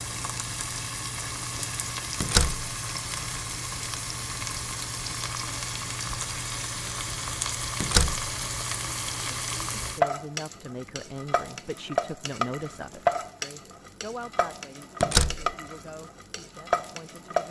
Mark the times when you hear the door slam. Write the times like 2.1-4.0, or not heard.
2.2-2.7, 7.8-8.3, 15.0-15.5.